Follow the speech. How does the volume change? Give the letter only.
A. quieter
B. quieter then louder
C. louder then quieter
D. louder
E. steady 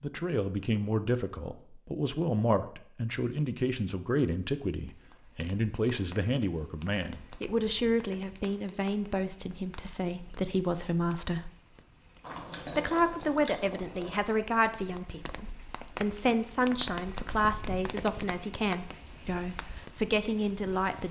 E.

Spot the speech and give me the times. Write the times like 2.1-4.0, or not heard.
0.0-11.5, 12.7-21.0.